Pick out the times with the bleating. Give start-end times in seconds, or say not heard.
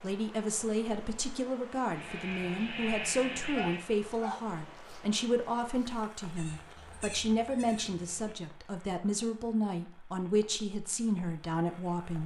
1.9-3.8, 6.3-8.3.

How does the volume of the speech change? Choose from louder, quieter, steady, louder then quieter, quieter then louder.
steady.